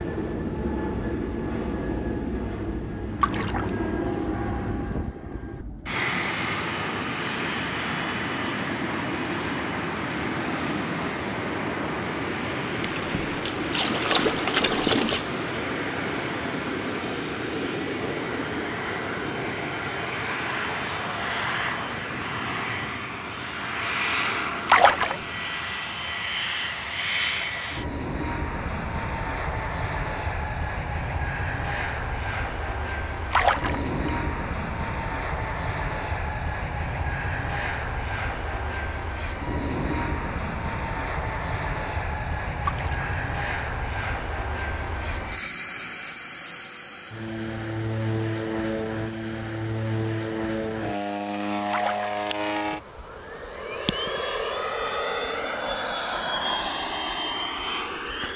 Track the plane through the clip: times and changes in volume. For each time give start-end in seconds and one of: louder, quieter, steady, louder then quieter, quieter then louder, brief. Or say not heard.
0.0-58.3 steady.